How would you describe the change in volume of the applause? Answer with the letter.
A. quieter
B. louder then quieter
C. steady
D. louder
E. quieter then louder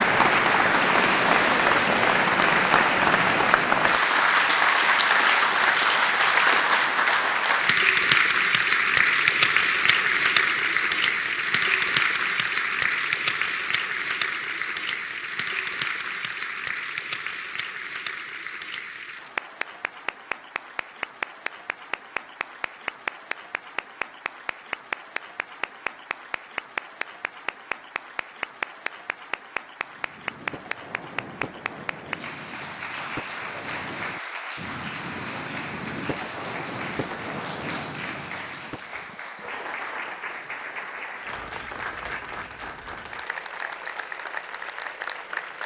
A.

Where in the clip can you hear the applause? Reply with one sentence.
The applause can be heard from 0.0 to 45.6 s.